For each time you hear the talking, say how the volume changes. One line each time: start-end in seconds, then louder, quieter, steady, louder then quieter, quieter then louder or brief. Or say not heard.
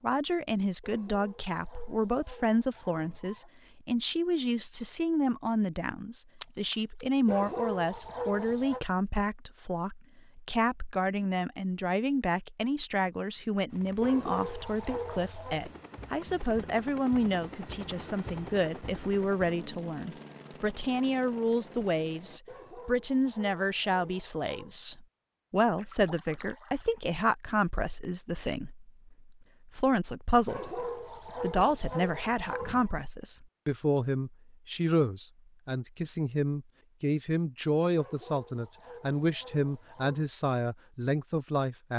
0.0-41.9 steady.